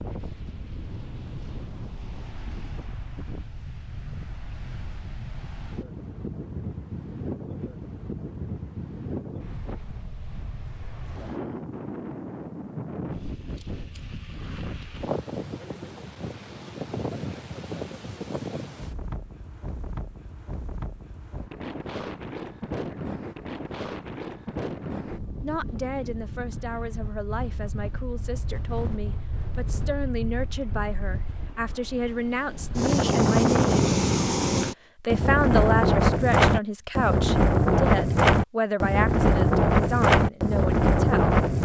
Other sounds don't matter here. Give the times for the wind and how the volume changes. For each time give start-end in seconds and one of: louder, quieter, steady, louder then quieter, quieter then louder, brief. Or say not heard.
0.0-41.6 louder.